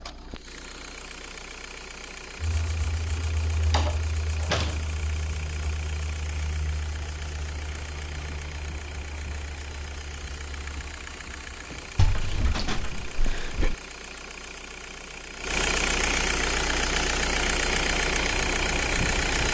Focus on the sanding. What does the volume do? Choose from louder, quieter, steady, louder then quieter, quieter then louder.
quieter.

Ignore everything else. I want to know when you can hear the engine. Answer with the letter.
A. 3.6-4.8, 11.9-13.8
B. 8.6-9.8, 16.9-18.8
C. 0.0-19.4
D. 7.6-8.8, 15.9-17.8
C.